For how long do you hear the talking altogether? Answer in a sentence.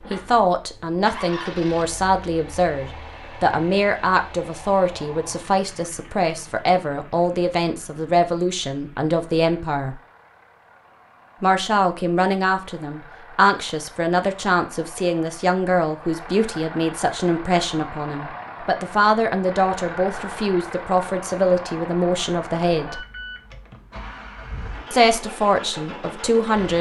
The talking can be heard for 23 seconds in total.